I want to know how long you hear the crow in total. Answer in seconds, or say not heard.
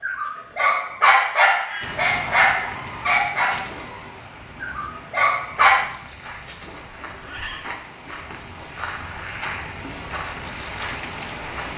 not heard.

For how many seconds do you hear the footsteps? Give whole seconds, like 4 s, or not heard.
6 s.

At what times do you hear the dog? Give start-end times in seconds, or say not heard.
0.0-5.8.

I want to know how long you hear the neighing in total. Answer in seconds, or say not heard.
2 s.